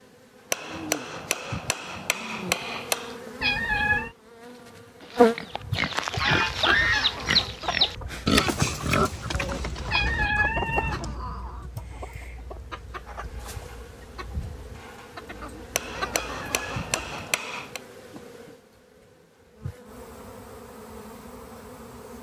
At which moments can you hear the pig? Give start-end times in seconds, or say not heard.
5.0-10.3.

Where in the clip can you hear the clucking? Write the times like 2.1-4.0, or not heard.
6.6-17.2.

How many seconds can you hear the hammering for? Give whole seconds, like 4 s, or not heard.
5 s.